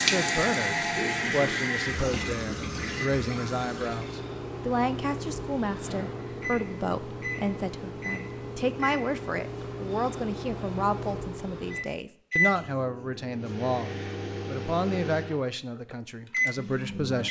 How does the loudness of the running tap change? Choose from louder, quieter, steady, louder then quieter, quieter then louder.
quieter.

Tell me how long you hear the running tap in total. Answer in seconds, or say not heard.
4 s.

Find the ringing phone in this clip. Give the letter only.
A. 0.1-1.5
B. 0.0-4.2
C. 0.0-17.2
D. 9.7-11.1
A.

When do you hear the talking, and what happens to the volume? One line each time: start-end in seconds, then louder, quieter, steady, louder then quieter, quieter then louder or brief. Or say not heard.
0.0-17.2 steady.